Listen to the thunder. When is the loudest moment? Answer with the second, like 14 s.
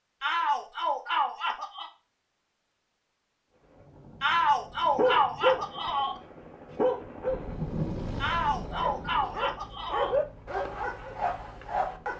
8 s.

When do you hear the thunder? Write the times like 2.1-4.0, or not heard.
7.2-9.2.